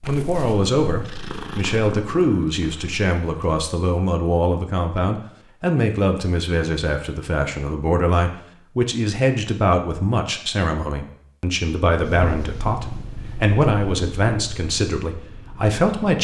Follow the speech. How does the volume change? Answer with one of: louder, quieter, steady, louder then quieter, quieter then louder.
steady.